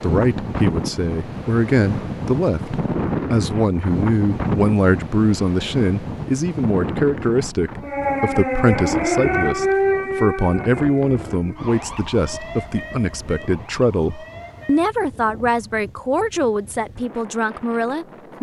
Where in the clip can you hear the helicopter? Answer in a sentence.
You can't hear the helicopter here.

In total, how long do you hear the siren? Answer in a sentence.
The siren can be heard for 7 seconds in total.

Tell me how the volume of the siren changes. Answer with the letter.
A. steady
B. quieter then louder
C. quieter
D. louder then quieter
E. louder
C.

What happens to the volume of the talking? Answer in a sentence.
The volume of the talking stays about the same.